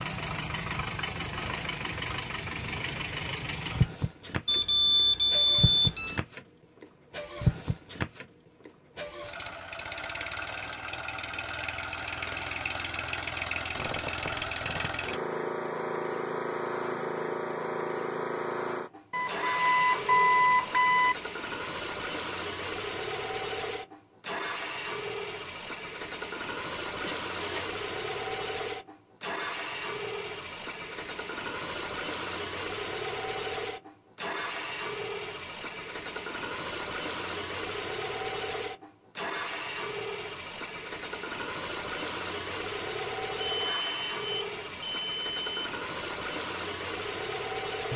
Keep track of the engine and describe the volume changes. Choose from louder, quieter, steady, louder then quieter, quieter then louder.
steady.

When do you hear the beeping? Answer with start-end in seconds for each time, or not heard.
4.5-6.2, 19.1-21.1, 43.4-45.5.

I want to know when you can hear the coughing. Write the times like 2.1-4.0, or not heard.
not heard.